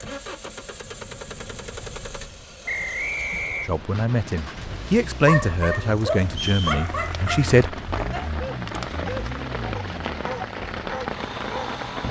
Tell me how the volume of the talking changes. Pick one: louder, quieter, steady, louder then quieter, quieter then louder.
louder then quieter.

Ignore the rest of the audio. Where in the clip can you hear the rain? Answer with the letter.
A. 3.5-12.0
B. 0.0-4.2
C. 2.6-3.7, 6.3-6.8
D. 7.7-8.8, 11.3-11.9
A.